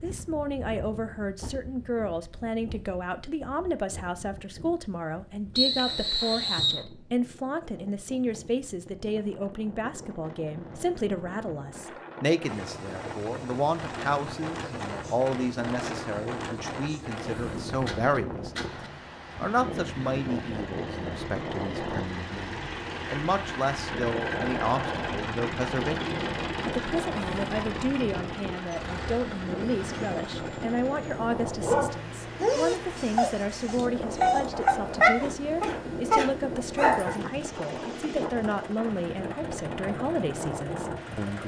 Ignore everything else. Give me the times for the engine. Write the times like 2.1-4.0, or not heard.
12.4-41.4.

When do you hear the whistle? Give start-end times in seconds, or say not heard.
5.5-6.8.